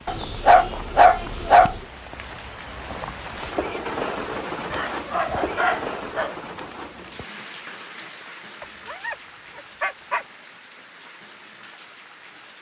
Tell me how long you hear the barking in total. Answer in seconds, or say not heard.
5 s.